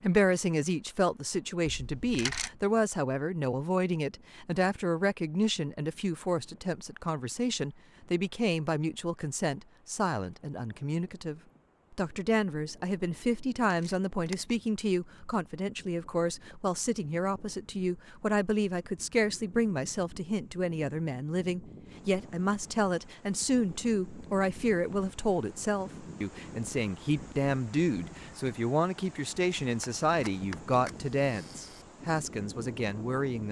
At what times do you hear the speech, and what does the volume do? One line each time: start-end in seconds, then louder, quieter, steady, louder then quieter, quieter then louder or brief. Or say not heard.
0.0-33.4 steady.